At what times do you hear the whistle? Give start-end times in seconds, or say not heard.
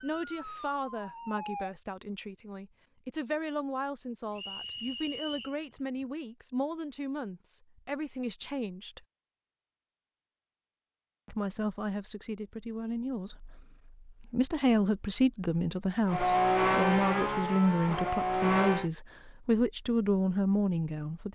4.3-5.6.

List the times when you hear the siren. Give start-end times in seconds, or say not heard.
0.0-1.7.